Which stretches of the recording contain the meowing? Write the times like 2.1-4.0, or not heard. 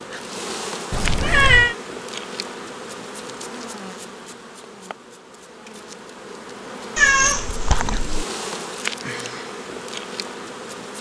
0.9-1.8, 7.0-8.2.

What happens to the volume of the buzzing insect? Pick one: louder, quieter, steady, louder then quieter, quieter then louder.
quieter then louder.